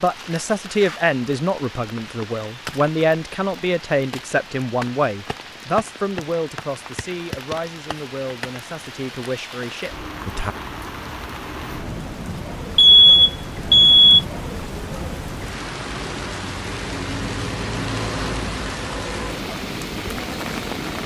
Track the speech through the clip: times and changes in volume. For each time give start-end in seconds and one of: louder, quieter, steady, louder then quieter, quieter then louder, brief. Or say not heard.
0.0-10.6 quieter.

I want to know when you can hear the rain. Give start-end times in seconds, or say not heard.
0.0-21.0.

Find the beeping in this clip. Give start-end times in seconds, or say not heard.
12.8-14.2.